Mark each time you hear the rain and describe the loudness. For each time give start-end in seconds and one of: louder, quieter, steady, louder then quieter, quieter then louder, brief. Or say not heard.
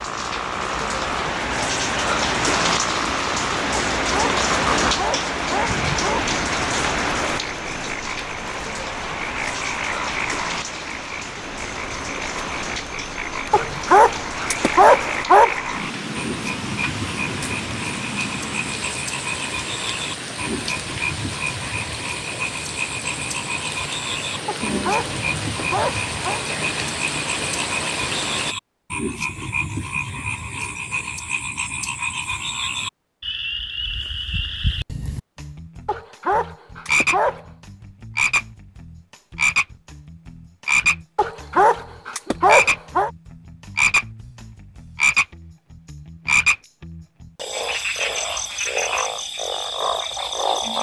0.0-28.6 quieter.